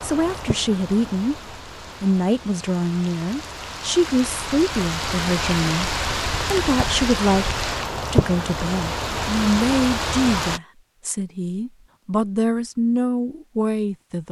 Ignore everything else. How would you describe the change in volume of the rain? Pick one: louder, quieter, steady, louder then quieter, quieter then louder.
louder.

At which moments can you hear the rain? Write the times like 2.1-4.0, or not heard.
0.0-10.6.